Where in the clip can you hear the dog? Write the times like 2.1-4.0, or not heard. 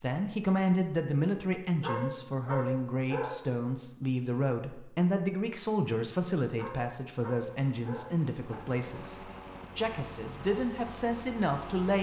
1.8-3.4, 6.5-8.6.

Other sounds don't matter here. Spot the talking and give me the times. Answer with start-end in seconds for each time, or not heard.
0.0-11.9.